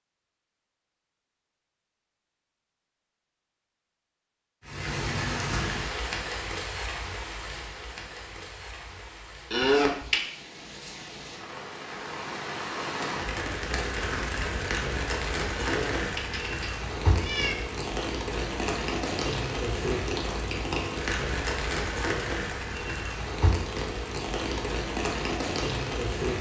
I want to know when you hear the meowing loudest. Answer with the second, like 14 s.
10 s.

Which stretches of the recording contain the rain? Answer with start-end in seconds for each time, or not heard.
4.6-26.3.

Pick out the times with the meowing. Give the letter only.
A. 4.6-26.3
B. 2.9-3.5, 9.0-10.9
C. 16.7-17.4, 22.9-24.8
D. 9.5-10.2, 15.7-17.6
D.